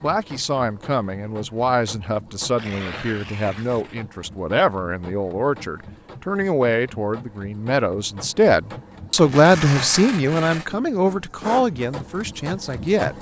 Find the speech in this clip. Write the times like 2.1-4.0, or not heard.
0.0-13.1.